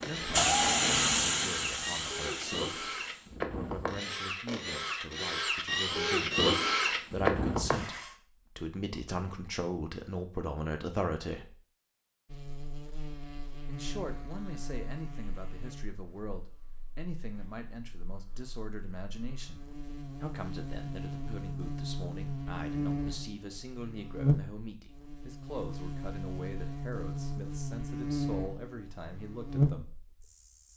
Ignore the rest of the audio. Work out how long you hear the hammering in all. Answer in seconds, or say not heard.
not heard.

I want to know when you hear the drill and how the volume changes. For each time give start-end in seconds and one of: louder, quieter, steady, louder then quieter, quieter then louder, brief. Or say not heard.
0.0-8.2 louder.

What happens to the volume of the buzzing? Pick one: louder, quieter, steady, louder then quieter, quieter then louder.
quieter then louder.